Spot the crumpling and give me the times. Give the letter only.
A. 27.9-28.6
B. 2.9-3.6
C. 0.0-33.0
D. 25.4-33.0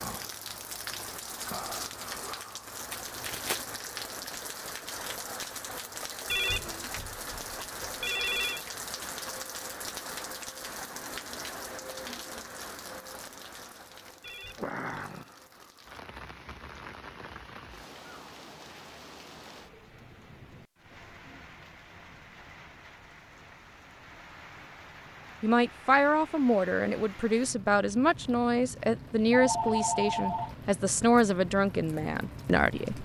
B.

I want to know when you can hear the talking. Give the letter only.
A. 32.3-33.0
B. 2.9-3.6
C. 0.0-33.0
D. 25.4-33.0
D.